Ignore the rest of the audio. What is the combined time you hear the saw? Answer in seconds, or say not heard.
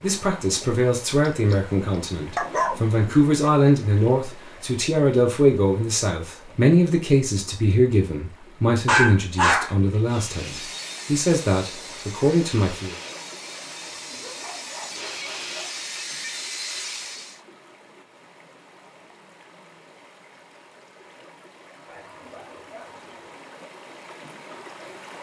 7 s.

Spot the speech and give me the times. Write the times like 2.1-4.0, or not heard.
0.0-12.9.